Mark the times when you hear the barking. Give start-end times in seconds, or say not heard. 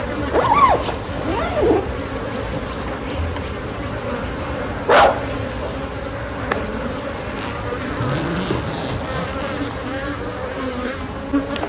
4.8-5.8.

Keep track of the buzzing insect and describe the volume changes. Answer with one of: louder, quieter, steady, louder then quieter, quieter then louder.
steady.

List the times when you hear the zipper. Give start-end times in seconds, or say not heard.
0.3-1.8, 7.3-9.8.